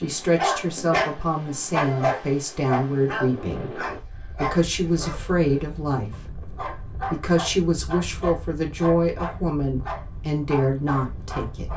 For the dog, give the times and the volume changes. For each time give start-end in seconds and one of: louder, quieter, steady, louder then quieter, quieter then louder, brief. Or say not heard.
0.3-11.7 quieter.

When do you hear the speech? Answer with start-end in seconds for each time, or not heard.
0.0-11.7.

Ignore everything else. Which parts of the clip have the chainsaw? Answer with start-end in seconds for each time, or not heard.
not heard.